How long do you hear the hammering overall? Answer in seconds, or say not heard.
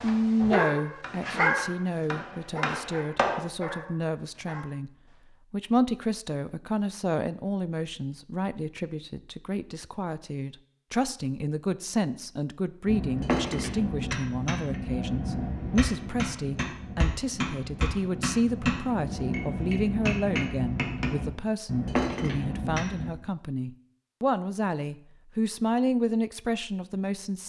14 s.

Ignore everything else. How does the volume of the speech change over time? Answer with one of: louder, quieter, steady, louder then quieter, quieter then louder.
steady.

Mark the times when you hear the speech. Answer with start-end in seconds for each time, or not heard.
0.0-4.9, 5.5-27.4.